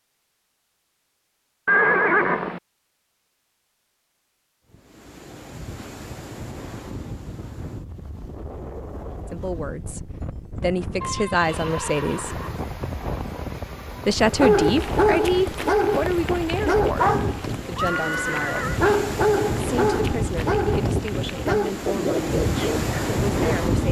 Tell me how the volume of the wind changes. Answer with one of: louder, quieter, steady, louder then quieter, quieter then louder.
louder.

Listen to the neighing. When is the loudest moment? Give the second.
2 s.